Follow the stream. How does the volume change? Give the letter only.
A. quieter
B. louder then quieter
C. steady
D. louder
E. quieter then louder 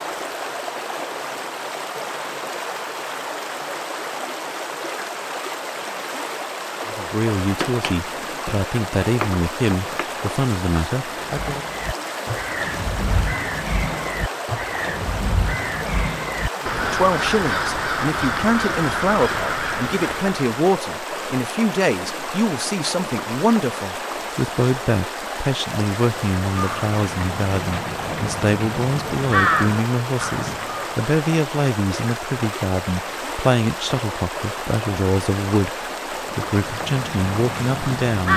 C.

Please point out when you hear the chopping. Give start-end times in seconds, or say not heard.
7.5-10.2.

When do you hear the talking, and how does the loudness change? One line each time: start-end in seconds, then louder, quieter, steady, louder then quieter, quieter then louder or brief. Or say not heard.
6.8-11.7 steady
16.6-38.3 steady.